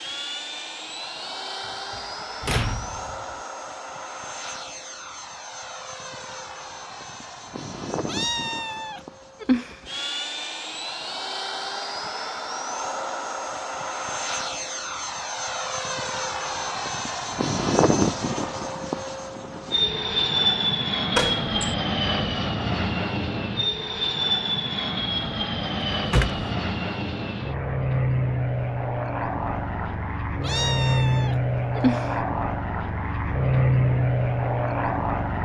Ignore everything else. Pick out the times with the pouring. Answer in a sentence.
The pouring can't be heard in this clip.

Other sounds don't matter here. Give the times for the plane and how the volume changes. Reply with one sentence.
You can hear the plane from 0.0 to 35.3 s, getting louder.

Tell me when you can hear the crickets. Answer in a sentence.
You can't hear the crickets here.